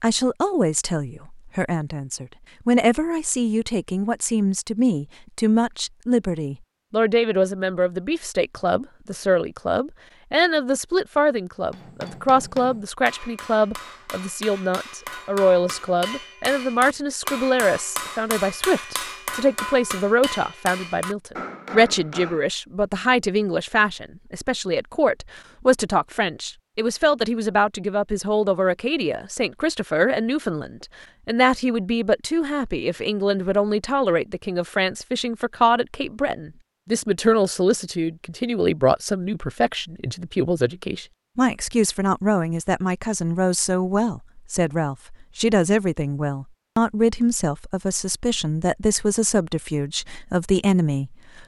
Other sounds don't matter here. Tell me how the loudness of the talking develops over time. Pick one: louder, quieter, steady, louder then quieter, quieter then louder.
steady.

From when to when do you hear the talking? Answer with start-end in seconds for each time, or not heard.
0.0-51.4.